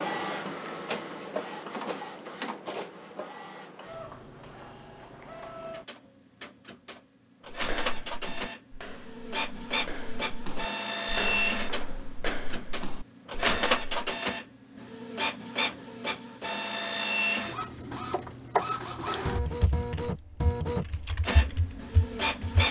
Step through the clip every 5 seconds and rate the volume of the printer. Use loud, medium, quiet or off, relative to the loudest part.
medium, medium, loud, loud, loud.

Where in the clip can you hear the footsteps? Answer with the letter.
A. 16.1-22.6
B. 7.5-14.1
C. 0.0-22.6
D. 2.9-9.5
B.